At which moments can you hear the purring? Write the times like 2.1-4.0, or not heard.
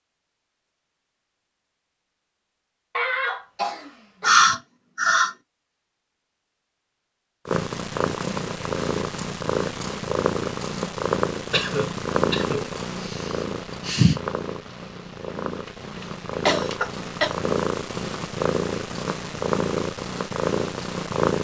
7.5-21.3.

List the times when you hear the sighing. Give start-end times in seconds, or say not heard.
4.2-5.3, 13.1-14.2.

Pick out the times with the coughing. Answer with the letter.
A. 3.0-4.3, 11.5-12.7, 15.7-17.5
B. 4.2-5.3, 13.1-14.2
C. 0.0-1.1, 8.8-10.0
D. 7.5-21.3
A.